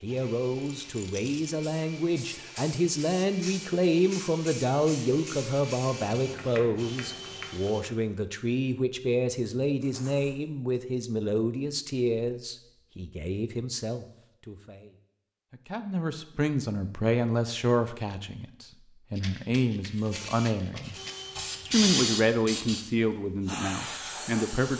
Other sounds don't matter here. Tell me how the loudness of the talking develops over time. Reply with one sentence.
The loudness of the talking stays about the same.